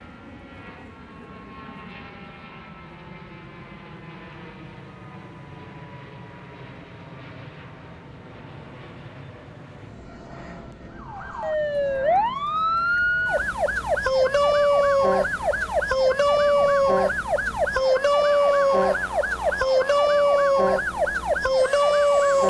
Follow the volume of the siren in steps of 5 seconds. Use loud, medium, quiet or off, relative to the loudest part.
off, off, loud, loud, loud.